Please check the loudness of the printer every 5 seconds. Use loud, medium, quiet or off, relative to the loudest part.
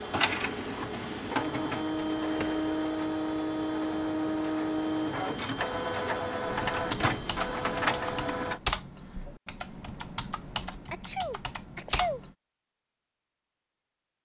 loud, loud, off.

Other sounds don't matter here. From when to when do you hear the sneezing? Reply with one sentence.
The sneezing can be heard from 10.9 to 12.2 s.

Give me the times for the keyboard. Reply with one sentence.
You can hear the keyboard from 6.5 to 12.3 s.